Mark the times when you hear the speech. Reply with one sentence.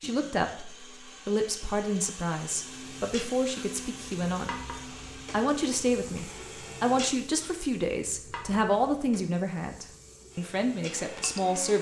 The speech can be heard from 0.0 to 4.5 s and from 5.3 to 11.7 s.